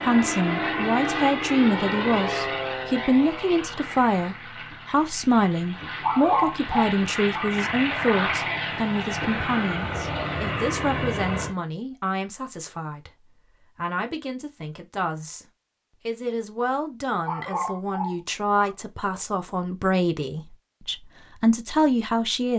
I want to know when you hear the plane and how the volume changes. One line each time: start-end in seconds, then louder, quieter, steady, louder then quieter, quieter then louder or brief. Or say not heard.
0.0-11.6 quieter then louder.